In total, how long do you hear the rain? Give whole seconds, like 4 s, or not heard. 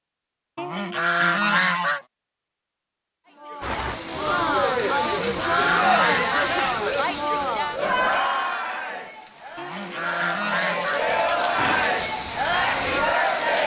10 s.